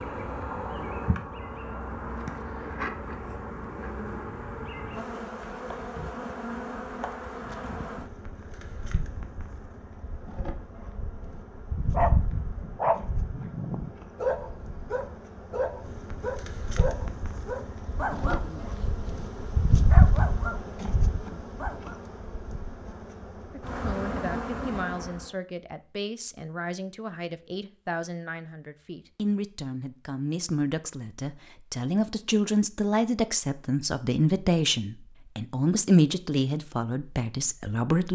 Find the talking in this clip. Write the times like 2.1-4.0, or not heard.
23.5-38.1.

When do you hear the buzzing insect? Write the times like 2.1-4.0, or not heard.
0.0-25.3.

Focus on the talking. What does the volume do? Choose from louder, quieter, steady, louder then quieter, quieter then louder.
louder.